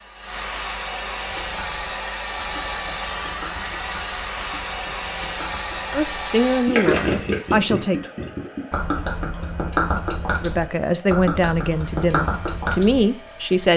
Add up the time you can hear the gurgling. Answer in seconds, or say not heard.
12 s.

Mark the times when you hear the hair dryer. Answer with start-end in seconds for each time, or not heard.
0.0-13.7.